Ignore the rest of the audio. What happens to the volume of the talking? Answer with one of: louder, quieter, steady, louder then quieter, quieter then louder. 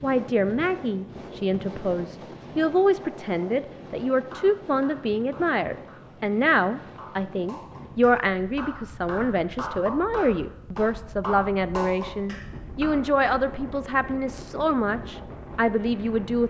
steady.